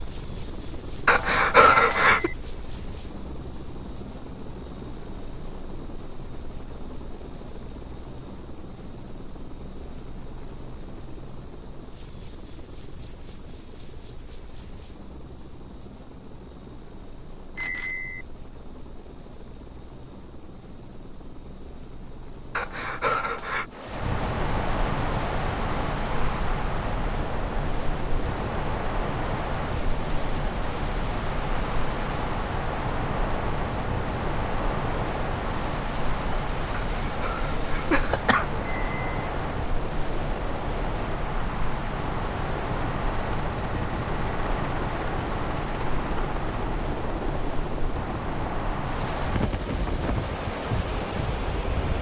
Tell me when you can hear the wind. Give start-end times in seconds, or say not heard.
23.9-51.9.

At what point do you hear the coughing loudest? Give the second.
2 s.